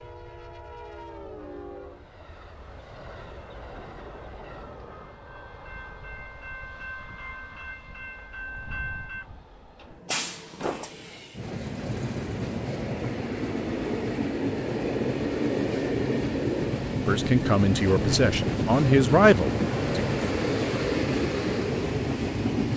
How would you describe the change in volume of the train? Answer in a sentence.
The volume of the train goes up.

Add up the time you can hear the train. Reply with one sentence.
The train can be heard for 23 seconds in total.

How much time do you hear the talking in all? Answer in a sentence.
The talking can be heard for 3 seconds in total.